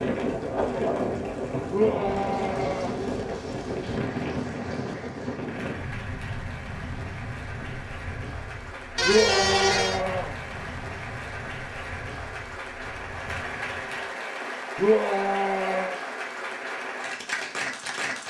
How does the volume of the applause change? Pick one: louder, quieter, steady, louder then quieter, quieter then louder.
louder.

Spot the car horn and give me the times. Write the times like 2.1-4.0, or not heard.
8.9-10.0.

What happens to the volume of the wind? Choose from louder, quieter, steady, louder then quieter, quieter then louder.
quieter.